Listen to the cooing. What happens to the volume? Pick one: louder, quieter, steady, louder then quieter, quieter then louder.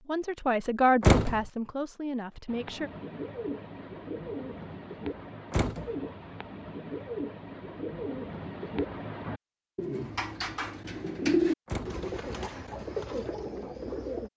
louder then quieter.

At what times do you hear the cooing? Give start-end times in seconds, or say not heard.
2.5-14.3.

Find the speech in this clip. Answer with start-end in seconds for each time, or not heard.
0.1-2.9.